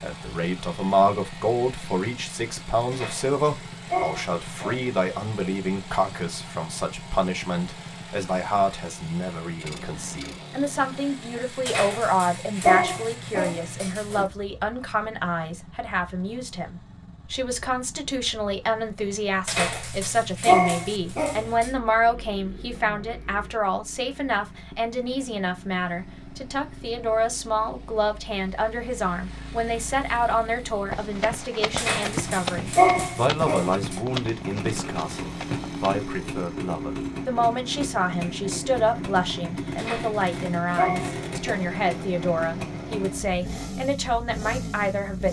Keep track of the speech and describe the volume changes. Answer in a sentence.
The loudness of the speech stays about the same.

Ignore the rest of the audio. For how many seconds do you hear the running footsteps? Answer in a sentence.
The running footsteps can be heard for 5 seconds in total.